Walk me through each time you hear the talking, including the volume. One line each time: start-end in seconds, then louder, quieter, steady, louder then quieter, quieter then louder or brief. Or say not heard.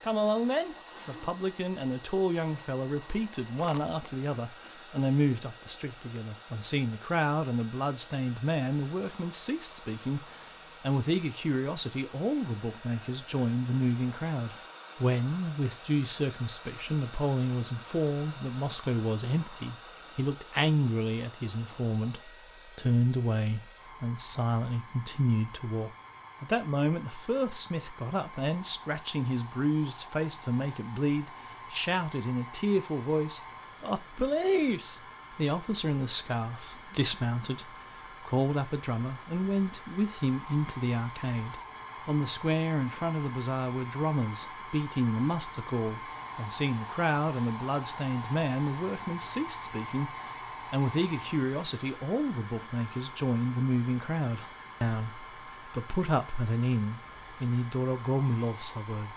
0.0-59.1 steady.